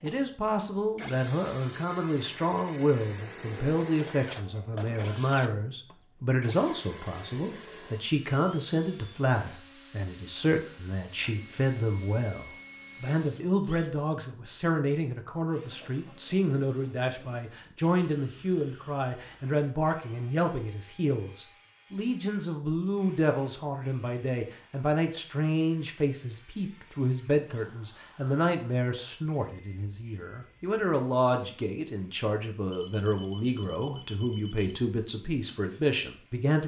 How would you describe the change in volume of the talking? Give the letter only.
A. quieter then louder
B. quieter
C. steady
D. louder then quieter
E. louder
C.